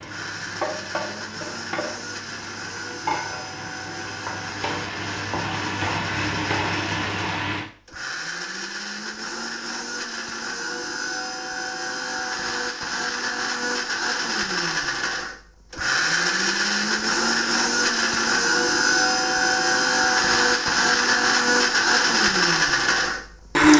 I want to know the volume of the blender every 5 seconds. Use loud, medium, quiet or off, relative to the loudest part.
quiet, quiet, medium, loud, loud.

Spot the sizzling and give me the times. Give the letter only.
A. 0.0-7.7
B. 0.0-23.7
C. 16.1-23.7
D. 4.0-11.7
A.